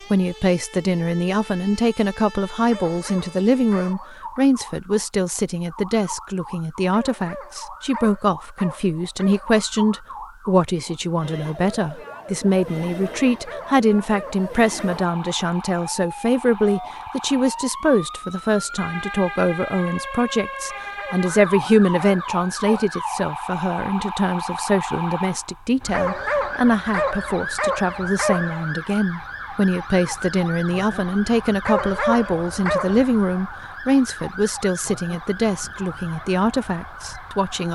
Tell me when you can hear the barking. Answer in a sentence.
You can hear the barking from 2.7 to 4.2 s, from 6.9 to 9.6 s, from 13.1 to 15.1 s, from 20.9 to 22.9 s, from 25.9 to 28.7 s and from 31.6 to 33.0 s.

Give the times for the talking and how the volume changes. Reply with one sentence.
The talking can be heard from 0.1 to 37.7 s, at a steady volume.